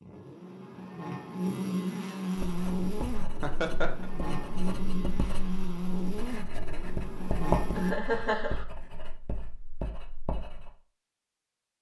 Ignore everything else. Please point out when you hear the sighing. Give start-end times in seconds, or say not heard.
not heard.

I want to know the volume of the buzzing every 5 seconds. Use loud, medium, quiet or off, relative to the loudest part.
loud, loud, off.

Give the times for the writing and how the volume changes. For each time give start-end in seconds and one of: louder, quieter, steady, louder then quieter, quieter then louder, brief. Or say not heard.
2.4-10.7 louder then quieter.